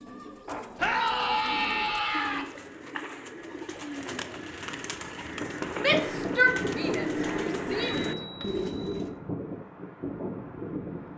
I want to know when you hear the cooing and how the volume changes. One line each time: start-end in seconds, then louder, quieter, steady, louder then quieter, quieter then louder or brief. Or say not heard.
0.0-9.2 louder.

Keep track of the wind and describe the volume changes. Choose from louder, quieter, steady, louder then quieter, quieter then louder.
steady.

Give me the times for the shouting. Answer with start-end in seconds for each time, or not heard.
0.8-2.5, 5.8-8.2.